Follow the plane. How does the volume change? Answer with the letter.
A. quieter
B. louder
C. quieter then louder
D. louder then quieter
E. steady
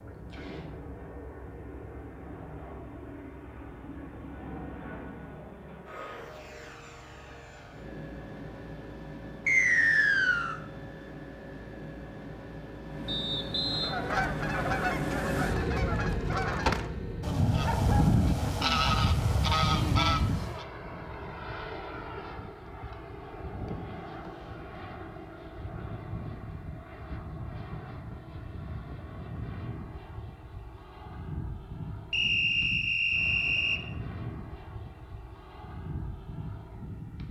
D.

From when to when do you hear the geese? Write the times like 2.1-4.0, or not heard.
13.7-20.6.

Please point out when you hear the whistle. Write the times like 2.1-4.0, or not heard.
9.4-10.6, 13.1-13.9, 32.1-33.8.